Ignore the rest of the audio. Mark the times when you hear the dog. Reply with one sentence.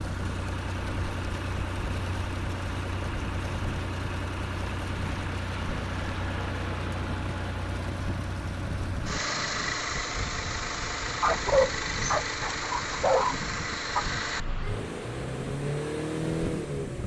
The dog can be heard from 11.2 to 14.1 s.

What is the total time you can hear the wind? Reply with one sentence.
The wind can be heard for 17 seconds in total.